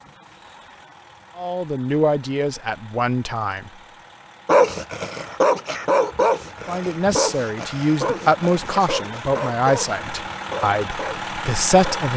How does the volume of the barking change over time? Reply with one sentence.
The volume of the barking goes down.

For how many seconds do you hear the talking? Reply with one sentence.
The talking can be heard for 8 seconds in total.